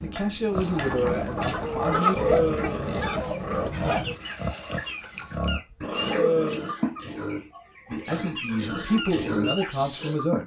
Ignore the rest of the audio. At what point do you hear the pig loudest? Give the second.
2 s.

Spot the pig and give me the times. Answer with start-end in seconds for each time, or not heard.
0.5-10.2.